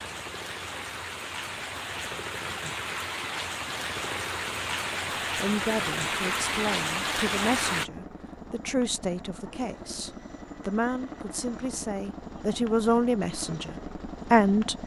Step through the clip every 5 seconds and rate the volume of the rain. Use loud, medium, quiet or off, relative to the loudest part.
medium, loud, off.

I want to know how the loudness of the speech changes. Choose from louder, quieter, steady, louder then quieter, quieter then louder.
louder.